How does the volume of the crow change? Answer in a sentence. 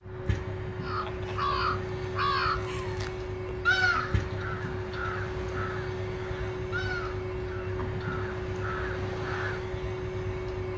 The loudness of the crow goes down.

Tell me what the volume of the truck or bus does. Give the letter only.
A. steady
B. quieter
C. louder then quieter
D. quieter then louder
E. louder
A.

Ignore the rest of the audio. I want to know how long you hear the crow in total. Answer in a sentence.
The crow can be heard for 9 seconds in total.